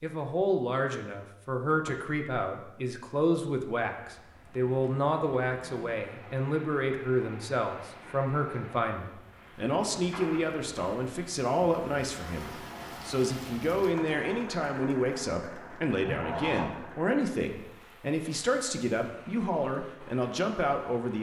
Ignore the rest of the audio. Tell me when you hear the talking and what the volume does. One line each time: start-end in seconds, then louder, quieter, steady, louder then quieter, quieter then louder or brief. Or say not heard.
0.0-21.1 steady.